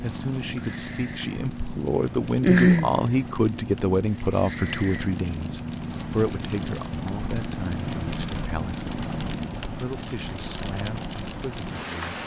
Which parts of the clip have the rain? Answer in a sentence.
The rain can be heard from 0.0 to 12.2 s.